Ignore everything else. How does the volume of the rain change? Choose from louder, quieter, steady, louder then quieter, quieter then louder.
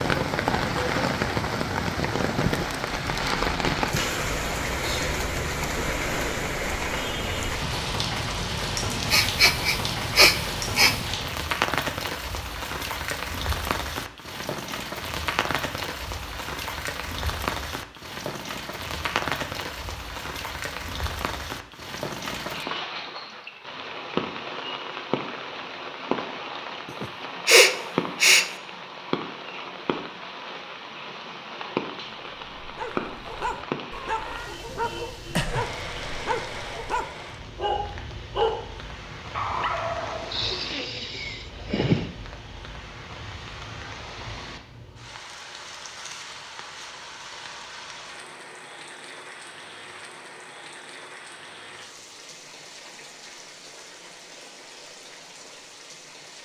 quieter.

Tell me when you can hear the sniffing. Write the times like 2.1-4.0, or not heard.
9.1-11.1, 27.0-28.5, 40.3-42.1.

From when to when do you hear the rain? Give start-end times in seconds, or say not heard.
0.0-56.4.